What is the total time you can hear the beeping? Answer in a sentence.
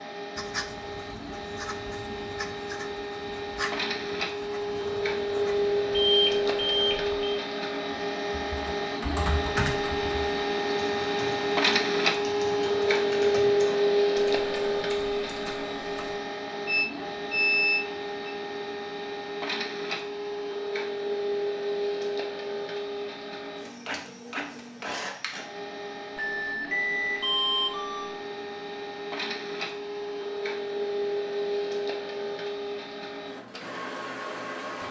The beeping can be heard for 5 seconds in total.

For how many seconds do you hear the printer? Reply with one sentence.
The printer can be heard for 35 seconds in total.